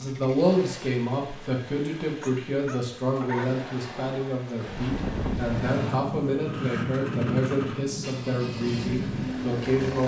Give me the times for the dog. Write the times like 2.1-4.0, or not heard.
2.2-3.5.